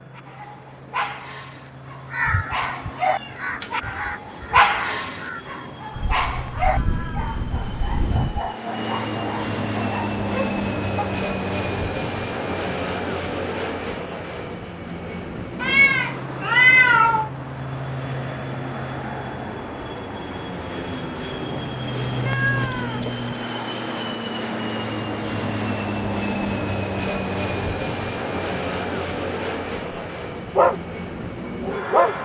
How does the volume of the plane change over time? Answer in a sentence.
The volume of the plane goes up.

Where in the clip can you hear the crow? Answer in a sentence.
The crow can be heard from 2.1 to 8.5 s.